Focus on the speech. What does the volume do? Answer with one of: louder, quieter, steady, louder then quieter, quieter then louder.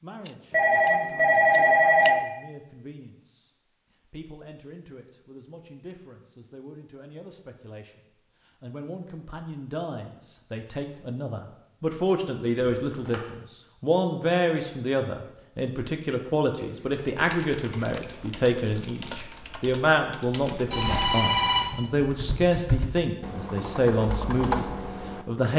louder.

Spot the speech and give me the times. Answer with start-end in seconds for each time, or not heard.
0.0-25.5.